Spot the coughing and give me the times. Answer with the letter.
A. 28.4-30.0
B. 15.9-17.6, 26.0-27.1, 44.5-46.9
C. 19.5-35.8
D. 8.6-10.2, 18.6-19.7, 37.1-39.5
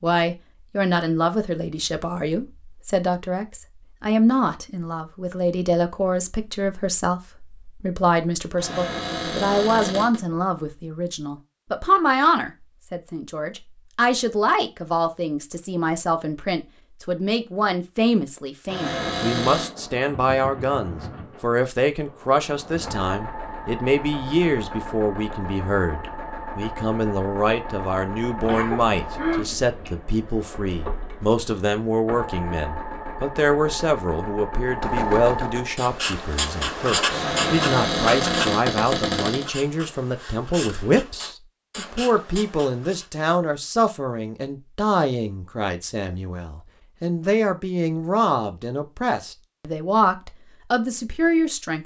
A.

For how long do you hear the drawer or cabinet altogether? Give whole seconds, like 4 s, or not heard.
5 s.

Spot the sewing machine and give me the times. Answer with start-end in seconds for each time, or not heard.
19.5-35.8.